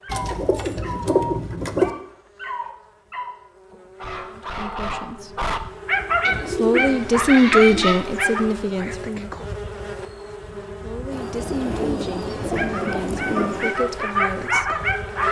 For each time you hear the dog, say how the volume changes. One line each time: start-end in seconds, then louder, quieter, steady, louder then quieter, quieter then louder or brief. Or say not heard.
0.0-8.4 louder
12.6-15.2 brief.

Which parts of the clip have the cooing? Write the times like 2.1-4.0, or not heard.
0.1-1.9, 6.2-8.0, 11.1-13.8.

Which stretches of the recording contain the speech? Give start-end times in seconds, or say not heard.
4.3-5.5, 6.5-9.4, 10.8-14.8.